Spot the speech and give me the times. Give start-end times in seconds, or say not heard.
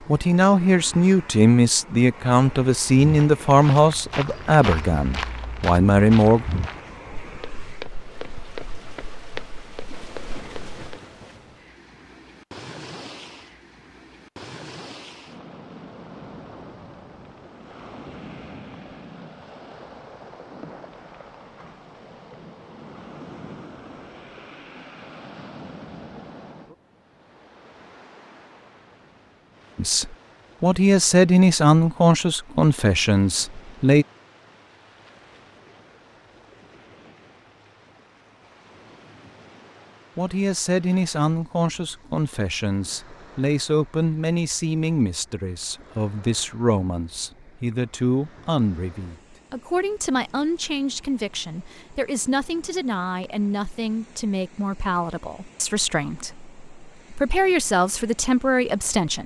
0.1-6.5, 29.8-34.0, 40.1-59.2.